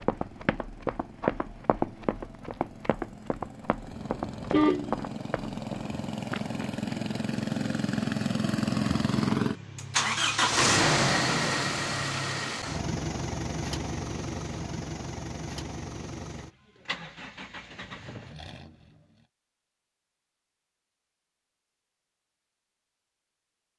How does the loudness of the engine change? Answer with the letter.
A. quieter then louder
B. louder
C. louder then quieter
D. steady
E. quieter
C.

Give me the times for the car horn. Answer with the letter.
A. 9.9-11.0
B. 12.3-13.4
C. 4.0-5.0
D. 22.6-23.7
C.